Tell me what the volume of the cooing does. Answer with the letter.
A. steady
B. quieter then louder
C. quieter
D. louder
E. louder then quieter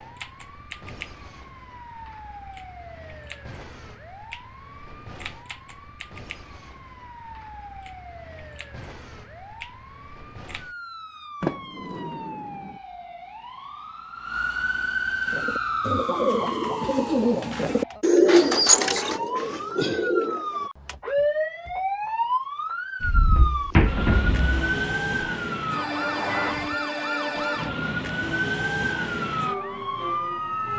E.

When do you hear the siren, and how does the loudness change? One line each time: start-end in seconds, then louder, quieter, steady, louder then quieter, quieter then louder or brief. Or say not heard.
0.0-30.7 louder.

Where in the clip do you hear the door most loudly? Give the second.
24 s.